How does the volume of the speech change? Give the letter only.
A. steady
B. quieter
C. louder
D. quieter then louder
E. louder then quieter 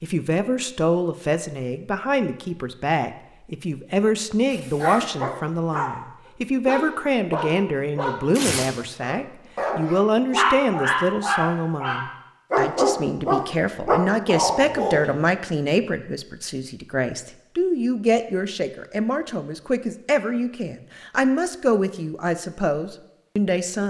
A.